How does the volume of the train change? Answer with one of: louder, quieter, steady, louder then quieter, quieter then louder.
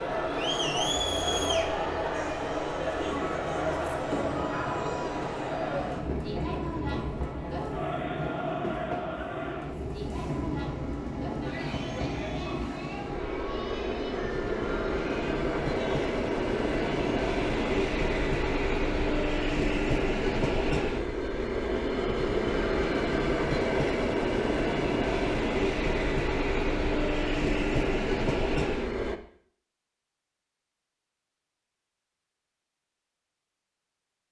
louder.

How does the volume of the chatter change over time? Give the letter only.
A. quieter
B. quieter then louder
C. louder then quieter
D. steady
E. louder
A.